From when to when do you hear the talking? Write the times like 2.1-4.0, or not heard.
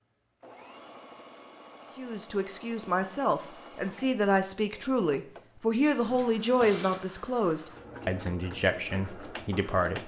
1.9-10.0.